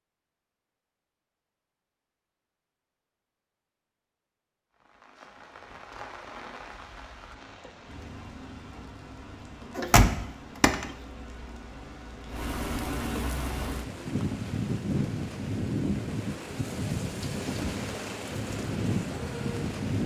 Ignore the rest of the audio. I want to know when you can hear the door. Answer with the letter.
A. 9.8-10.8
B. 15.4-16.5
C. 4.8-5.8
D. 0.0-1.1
A.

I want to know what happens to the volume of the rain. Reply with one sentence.
The loudness of the rain goes up.